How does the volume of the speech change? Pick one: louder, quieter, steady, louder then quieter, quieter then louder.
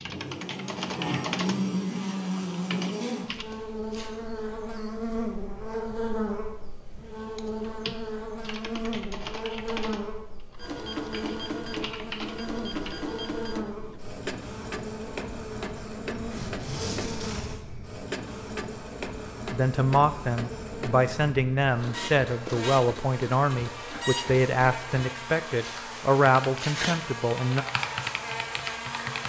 steady.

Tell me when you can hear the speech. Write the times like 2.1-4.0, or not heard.
19.5-27.6.